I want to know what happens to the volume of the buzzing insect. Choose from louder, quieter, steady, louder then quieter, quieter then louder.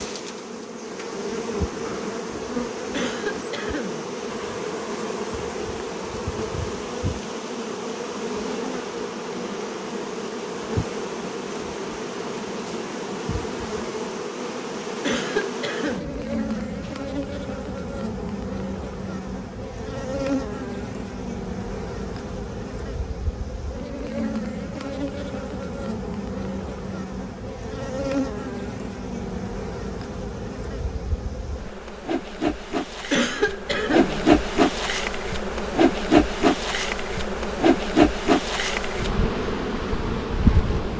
louder.